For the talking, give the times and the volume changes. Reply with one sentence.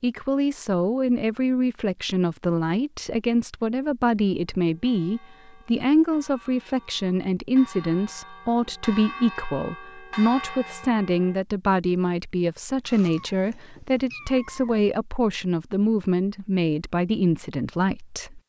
You can hear the talking from 0.0 to 18.4 s, at a steady volume.